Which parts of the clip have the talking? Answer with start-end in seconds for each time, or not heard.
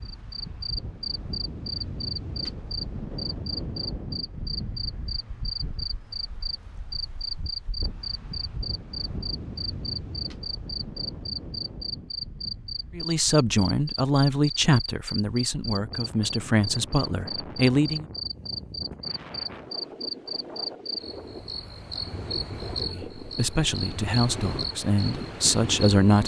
12.9-18.1, 22.8-26.2.